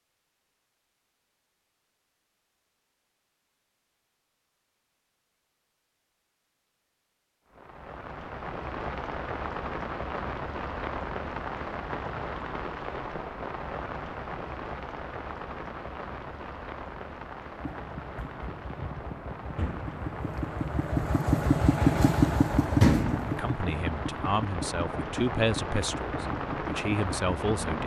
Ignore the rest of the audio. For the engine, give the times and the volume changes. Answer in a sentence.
You can hear the engine from 17.6 to 27.8 s, getting louder then quieter.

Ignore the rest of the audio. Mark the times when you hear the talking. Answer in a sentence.
You can hear the talking from 23.2 to 27.8 s.